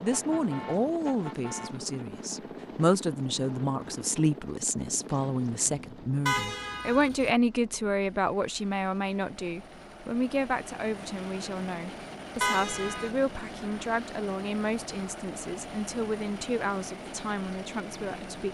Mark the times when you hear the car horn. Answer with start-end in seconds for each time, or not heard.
0.1-1.9, 6.2-7.3, 12.4-13.1.